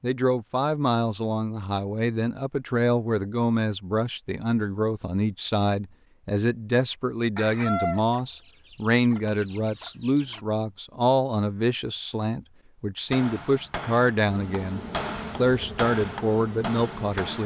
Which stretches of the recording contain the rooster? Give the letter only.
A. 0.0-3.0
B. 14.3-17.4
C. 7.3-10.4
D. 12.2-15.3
C.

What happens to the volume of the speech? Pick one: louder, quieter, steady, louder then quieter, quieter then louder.
steady.